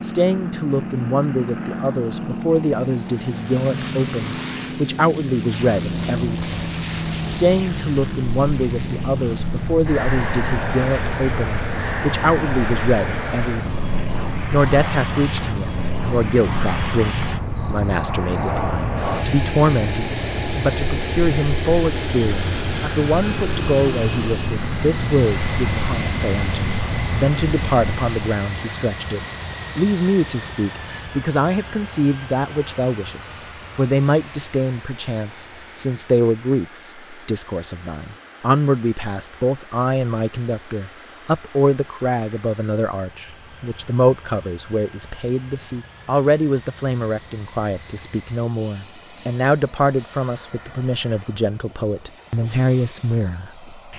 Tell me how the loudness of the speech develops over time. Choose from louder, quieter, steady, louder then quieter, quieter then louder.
steady.